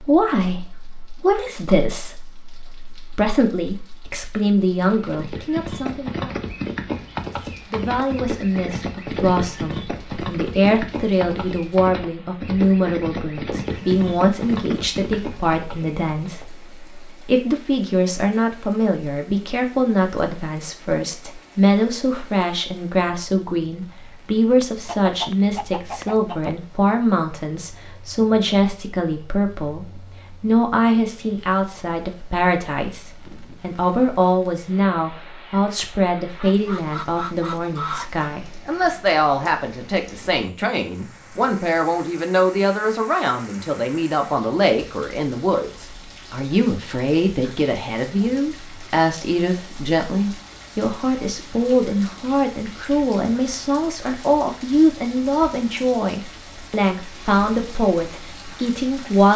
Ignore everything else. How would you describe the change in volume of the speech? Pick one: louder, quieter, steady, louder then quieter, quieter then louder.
steady.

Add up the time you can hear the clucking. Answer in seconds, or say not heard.
4 s.